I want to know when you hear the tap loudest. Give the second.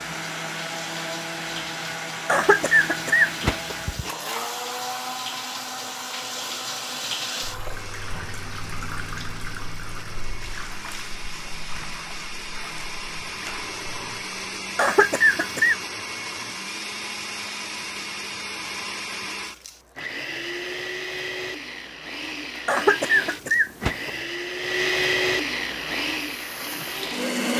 7 s.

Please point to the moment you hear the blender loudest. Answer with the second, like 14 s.
25 s.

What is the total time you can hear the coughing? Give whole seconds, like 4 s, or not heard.
4 s.